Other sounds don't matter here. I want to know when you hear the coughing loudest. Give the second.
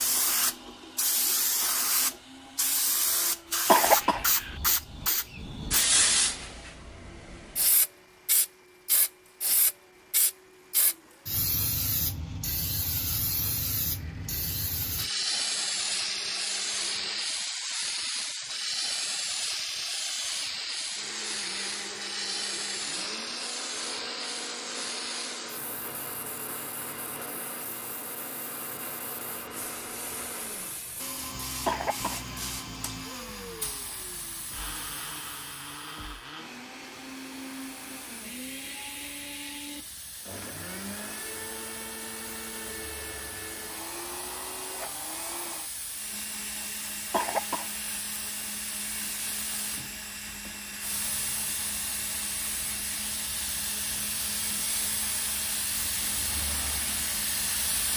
4 s.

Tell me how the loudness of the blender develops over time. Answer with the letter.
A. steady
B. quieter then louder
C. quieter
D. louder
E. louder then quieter
D.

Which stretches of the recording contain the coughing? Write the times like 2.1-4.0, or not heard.
3.6-4.5, 31.6-32.4, 47.1-47.9.